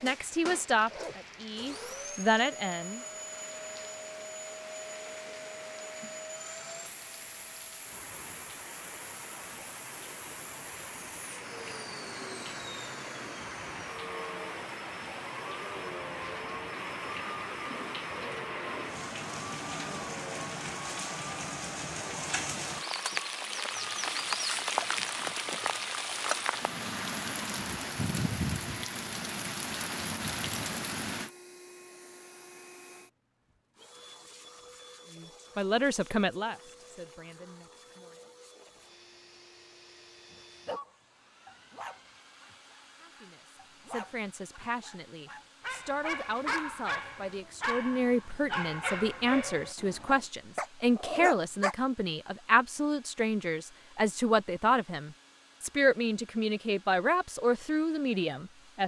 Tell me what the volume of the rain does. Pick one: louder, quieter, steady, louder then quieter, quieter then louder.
louder.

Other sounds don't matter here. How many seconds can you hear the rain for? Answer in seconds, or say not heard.
31 s.